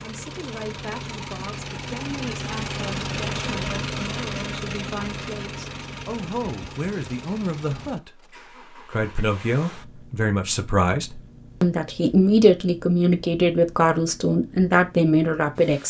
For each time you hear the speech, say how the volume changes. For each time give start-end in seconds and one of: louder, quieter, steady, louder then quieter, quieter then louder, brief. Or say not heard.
0.0-15.8 louder.